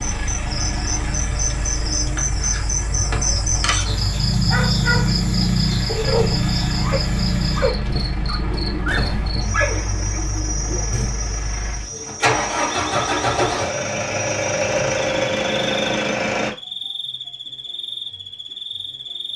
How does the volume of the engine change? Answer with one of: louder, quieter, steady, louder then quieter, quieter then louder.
louder.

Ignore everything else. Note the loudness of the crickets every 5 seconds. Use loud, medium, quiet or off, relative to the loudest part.
loud, loud, medium, medium.